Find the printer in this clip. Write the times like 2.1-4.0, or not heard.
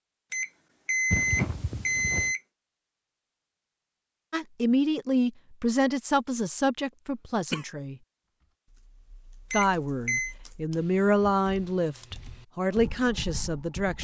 not heard.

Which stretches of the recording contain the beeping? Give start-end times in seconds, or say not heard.
0.3-2.4, 9.5-10.3.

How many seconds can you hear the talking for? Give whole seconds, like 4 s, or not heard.
8 s.